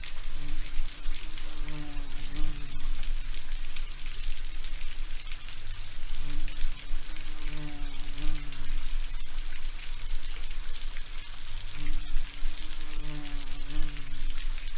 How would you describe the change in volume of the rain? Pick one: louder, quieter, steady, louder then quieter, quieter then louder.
steady.